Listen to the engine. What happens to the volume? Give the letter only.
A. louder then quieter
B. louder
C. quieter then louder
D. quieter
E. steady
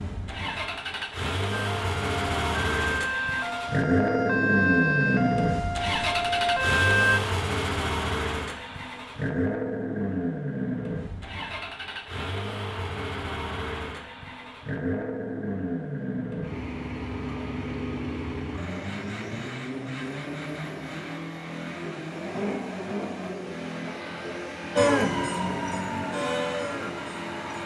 D.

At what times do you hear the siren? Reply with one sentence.
You can hear the siren from 1.5 to 7.2 s and from 24.8 to 27.6 s.